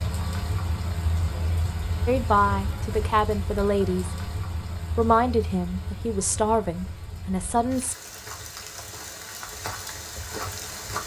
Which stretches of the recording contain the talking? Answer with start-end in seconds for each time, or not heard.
2.0-8.0.